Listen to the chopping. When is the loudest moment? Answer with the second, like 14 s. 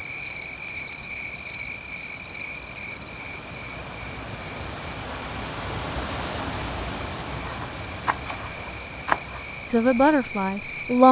9 s.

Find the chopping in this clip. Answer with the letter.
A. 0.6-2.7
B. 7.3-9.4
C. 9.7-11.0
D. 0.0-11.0
B.